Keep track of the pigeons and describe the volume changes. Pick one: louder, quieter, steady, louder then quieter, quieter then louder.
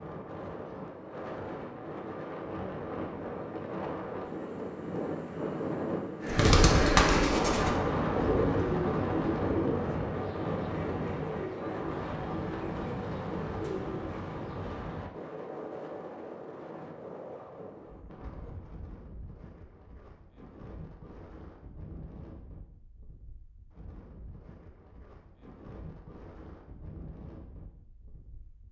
quieter.